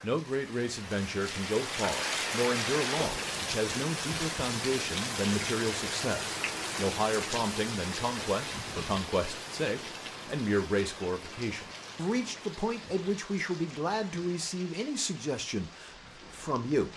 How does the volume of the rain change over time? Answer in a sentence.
The loudness of the rain goes down.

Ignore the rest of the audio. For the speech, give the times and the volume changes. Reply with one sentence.
You can hear the speech from 0.0 to 16.9 s, at a steady volume.